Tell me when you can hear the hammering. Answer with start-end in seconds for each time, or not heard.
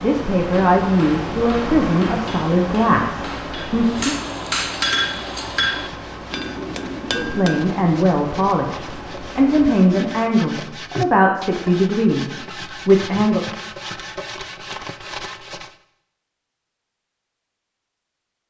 0.5-7.7.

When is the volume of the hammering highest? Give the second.
5 s.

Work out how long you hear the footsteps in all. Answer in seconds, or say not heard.
not heard.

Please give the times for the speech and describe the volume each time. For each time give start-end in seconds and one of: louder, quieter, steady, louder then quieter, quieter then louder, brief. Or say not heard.
0.0-4.2 quieter
7.1-13.4 steady.